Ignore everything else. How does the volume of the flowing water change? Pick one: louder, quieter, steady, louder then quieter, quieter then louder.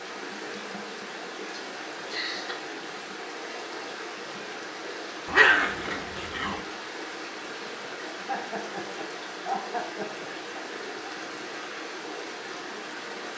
steady.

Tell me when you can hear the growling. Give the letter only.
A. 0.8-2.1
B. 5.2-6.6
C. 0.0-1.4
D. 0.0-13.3
B.